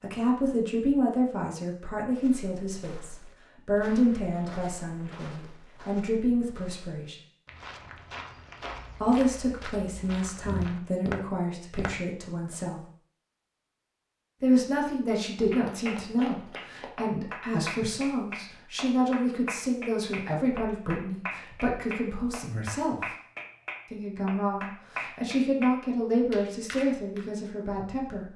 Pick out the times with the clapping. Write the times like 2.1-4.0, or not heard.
15.2-27.3.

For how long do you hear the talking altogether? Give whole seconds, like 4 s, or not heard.
24 s.